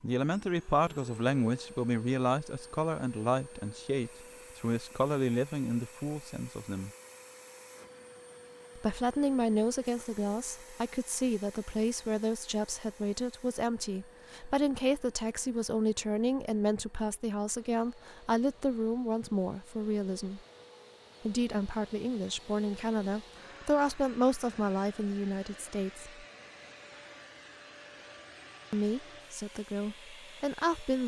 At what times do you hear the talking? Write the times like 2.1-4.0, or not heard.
0.0-6.9, 8.8-20.4, 21.2-26.1, 28.7-31.0.